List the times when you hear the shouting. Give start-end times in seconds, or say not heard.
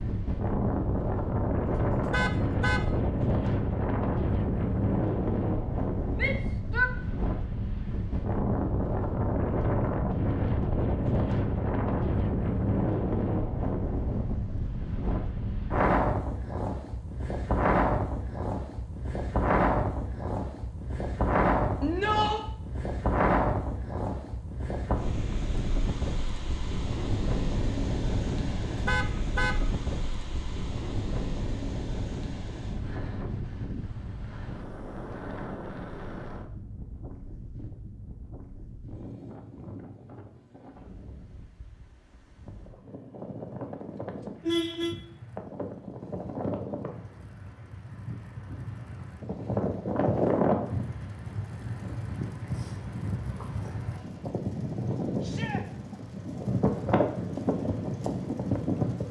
6.2-6.9, 21.8-22.4, 55.2-55.6.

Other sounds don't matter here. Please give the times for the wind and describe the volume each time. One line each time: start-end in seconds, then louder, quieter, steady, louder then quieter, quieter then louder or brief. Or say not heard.
0.0-59.0 quieter then louder.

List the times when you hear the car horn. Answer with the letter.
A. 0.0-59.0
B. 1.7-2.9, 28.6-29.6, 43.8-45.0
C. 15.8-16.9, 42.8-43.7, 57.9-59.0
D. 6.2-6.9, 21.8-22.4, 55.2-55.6
B.